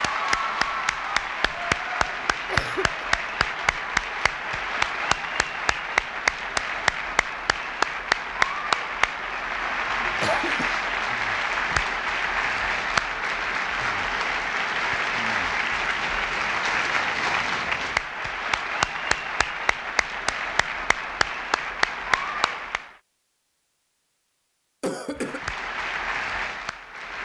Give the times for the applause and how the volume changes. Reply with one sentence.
The applause can be heard from 0.0 to 22.9 s, at a steady volume; and briefly from 25.1 to 27.2 s.